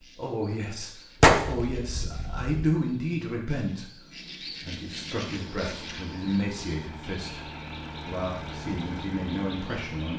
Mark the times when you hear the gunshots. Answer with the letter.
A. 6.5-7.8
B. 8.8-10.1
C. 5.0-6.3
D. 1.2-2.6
D.